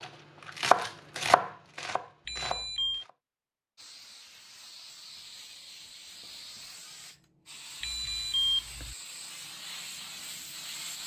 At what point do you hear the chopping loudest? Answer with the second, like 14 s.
1 s.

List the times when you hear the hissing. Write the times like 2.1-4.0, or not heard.
3.8-11.0.